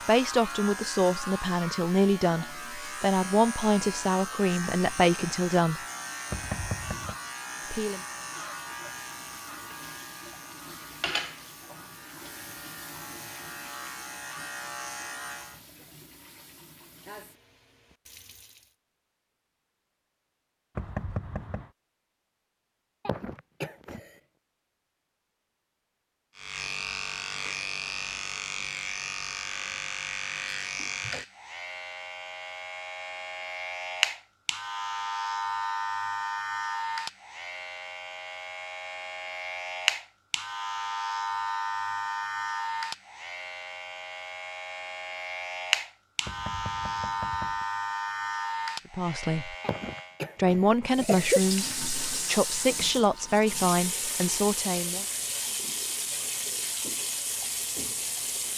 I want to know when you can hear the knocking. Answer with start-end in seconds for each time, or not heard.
6.3-7.2, 20.8-21.7, 46.2-47.6.